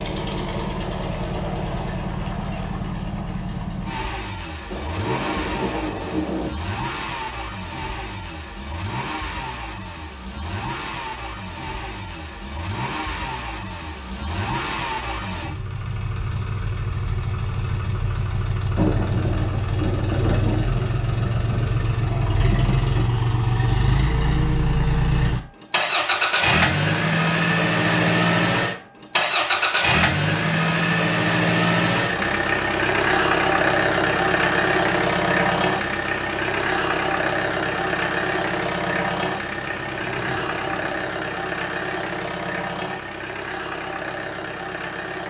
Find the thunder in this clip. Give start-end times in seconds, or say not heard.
4.7-6.5, 18.8-23.1, 39.8-40.9.